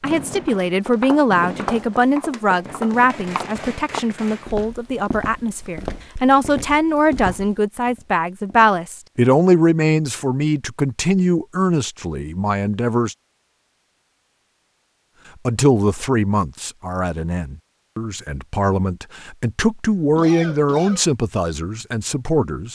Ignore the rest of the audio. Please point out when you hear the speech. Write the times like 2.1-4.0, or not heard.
0.0-13.2, 15.4-22.7.